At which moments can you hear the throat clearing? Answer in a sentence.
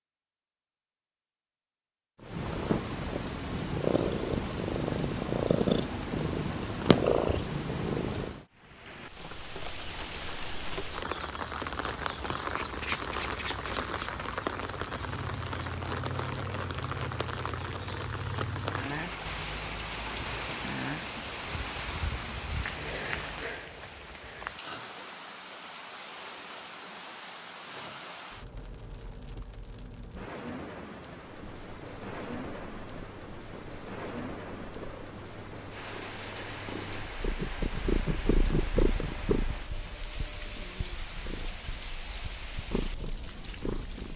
The throat clearing can't be heard in this clip.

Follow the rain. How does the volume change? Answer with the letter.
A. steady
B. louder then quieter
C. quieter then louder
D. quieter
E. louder
D.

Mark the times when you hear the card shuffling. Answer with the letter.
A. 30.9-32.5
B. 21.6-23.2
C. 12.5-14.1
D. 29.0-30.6
C.